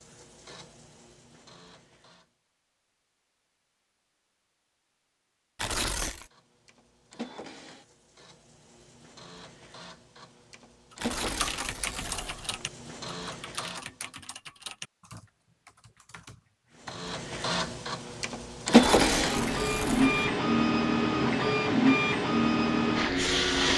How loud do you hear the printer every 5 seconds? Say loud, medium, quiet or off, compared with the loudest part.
quiet, quiet, quiet, loud, loud.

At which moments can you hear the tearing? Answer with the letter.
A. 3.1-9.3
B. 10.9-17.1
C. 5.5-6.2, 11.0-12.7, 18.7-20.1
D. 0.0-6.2
C.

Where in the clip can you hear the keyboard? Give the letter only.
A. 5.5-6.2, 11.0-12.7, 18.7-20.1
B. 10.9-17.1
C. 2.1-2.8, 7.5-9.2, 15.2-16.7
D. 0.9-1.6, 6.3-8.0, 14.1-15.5
B.